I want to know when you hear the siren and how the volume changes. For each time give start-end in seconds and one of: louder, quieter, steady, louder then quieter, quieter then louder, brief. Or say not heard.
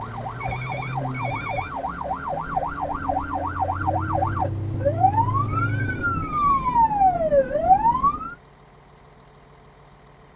0.0-8.3 louder.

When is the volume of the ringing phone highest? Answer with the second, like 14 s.
1 s.